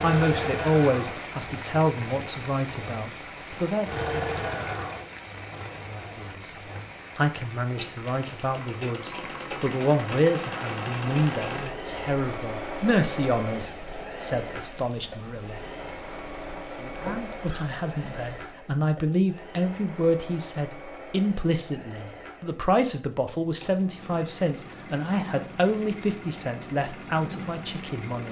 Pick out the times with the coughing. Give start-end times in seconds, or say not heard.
17.1-17.6.